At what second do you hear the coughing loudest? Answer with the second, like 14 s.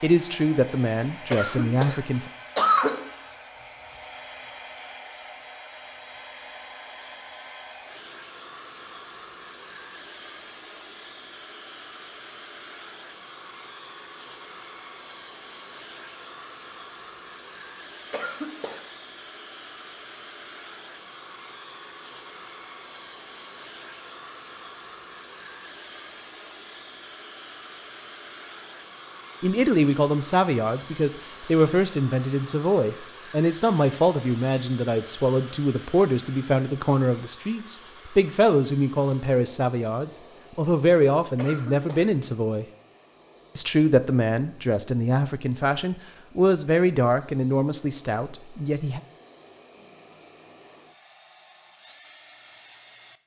3 s.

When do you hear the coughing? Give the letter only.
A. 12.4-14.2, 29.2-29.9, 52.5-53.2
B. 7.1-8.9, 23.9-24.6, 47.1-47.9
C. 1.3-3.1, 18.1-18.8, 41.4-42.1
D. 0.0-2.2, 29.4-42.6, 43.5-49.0
C.